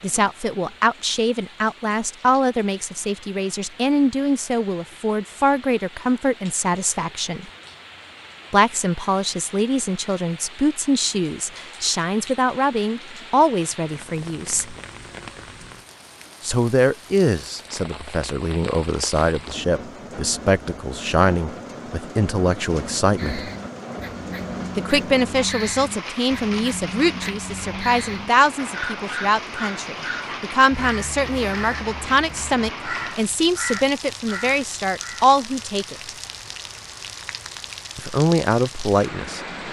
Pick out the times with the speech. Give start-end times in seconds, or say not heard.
0.0-7.5, 8.5-14.8, 16.4-23.5, 24.8-36.1, 38.0-39.4.